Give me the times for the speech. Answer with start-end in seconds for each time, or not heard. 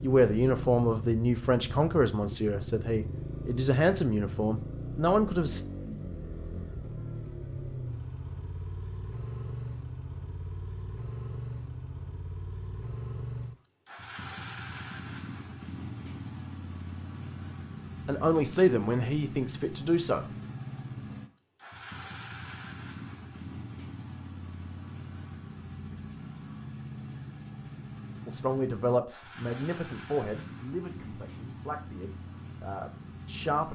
0.0-5.6, 18.1-20.2, 28.2-33.7.